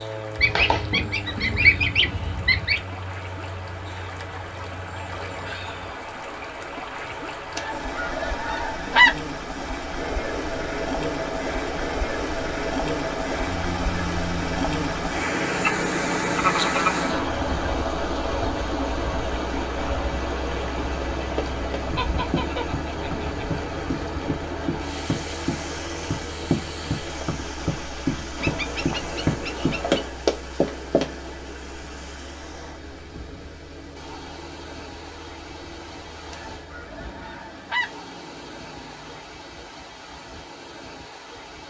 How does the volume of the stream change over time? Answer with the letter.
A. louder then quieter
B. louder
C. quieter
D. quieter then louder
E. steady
A.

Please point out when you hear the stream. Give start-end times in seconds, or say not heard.
0.0-41.6.